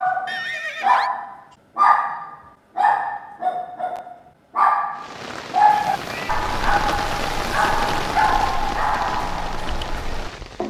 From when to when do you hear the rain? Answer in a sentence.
The rain can be heard from 4.9 to 10.6 s.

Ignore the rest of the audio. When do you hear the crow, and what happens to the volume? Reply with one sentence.
You can't hear the crow here.